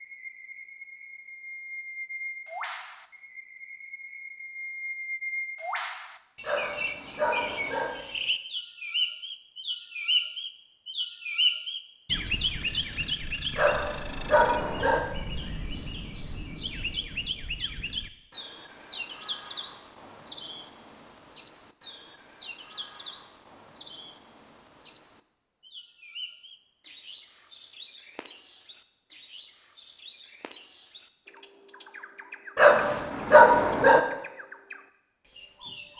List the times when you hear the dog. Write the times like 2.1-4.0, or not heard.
6.4-7.9, 13.6-15.0, 32.5-34.0.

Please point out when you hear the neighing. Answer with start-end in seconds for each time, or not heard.
not heard.